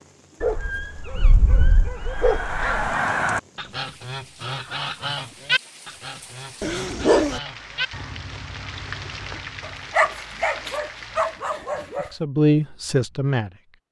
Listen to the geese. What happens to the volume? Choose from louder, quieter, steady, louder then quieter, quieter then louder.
quieter.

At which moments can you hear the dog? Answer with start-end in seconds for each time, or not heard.
0.4-3.0, 6.6-7.4, 9.6-12.1.